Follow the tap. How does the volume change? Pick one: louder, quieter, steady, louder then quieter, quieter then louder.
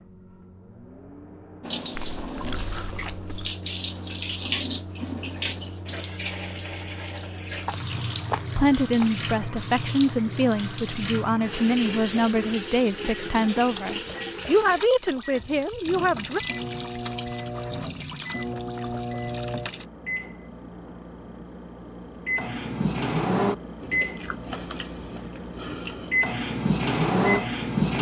quieter.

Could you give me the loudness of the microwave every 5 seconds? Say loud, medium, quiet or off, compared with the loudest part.
quiet, quiet, quiet, medium, medium, loud.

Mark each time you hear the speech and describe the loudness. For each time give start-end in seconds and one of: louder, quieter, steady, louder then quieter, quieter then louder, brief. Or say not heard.
8.6-16.4 steady.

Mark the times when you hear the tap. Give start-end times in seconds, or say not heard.
1.6-19.9.